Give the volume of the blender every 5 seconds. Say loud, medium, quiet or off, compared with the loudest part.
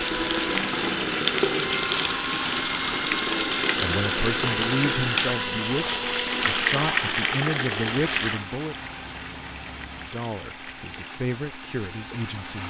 loud, loud, medium.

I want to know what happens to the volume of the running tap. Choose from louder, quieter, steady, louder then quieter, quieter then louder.
quieter.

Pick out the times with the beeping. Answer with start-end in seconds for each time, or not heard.
8.7-10.1.